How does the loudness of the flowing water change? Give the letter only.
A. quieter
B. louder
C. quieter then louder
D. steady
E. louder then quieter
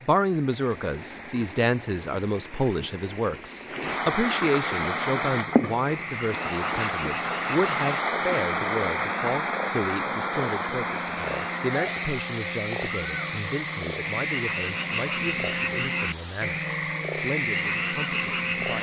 E.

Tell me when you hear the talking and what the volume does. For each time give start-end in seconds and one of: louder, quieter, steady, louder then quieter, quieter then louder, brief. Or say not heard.
0.0-18.7 quieter.